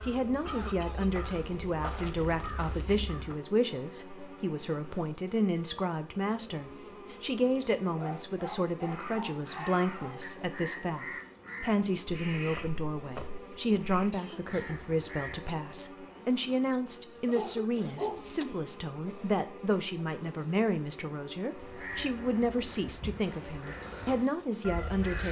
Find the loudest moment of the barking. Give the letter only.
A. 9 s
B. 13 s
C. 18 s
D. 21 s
C.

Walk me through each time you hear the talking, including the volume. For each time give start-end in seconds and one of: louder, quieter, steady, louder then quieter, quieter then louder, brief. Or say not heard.
0.0-25.2 steady.